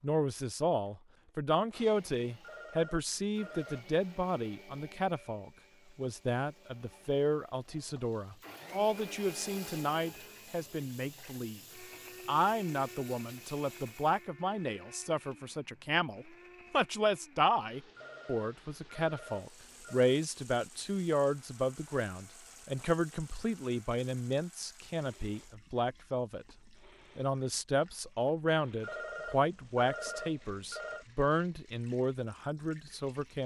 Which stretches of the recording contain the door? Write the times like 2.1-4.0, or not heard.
not heard.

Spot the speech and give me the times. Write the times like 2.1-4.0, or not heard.
0.0-11.6, 12.2-26.4, 27.1-33.4.